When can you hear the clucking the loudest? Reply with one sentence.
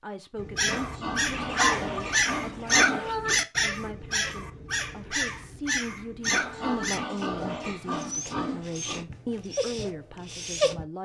The volume of the clucking peaks at 2 seconds.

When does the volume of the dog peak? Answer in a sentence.
The volume of the dog peaks at 3 seconds.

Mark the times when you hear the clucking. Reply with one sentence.
The clucking can be heard from 1.3 to 3.1 s.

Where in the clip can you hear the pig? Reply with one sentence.
You can hear the pig from 0.6 to 3.5 s and from 6.2 to 9.1 s.